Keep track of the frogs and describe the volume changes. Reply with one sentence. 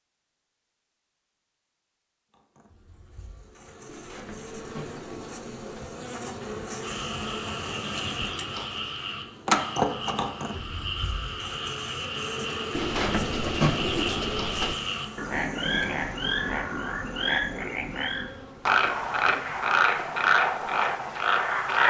The volume of the frogs goes up.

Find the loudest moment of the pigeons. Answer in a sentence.
The loudest moment of the pigeons is at 14 seconds.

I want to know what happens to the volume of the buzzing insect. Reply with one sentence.
The loudness of the buzzing insect goes up, then down.